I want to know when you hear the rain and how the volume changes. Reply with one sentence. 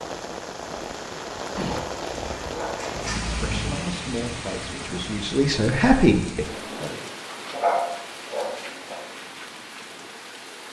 You can hear the rain from 0.0 to 10.6 s, getting quieter.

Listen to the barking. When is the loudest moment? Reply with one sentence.
The loudest moment of the barking is at 8 seconds.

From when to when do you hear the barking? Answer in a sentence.
You can hear the barking from 1.7 to 3.7 s and from 7.5 to 9.0 s.